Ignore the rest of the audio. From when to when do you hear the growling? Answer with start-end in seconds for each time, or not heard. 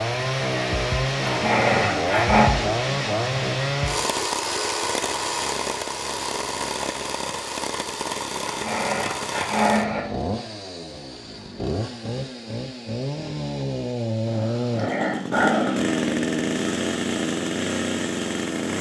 1.2-2.5, 8.4-10.1, 14.2-15.9.